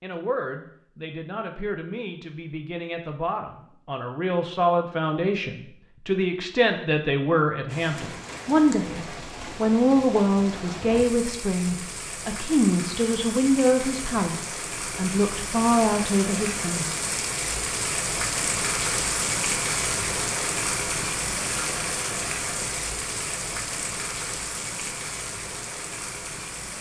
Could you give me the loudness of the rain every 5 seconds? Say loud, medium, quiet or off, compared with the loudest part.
off, medium, medium, loud, loud, medium.